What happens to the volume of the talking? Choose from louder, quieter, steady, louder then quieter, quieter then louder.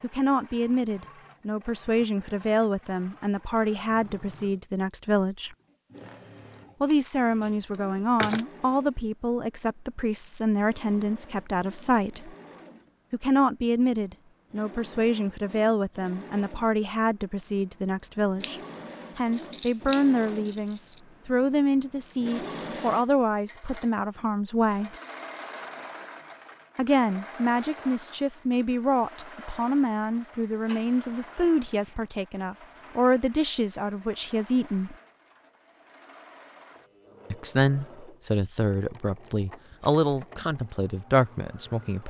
steady.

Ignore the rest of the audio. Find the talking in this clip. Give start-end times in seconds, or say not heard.
0.0-5.5, 6.8-12.3, 13.1-24.9, 26.8-35.0, 37.3-42.0.